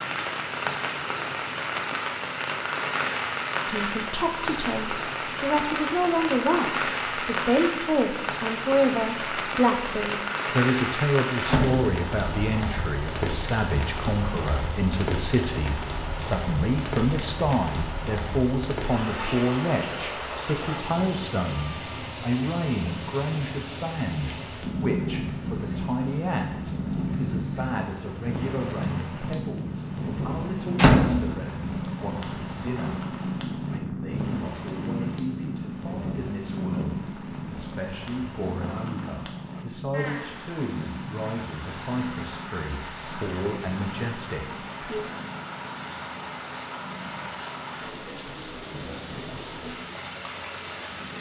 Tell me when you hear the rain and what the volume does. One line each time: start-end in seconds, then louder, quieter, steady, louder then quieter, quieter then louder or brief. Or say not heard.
0.0-51.1 quieter.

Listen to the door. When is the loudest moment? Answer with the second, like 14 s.
31 s.